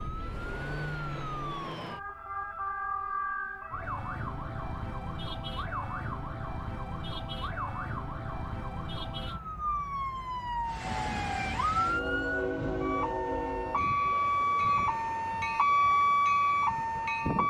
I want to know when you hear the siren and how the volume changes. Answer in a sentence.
The siren can be heard from 0.0 to 17.4 s, getting louder.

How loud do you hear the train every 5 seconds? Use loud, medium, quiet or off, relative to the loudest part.
off, off, loud, loud.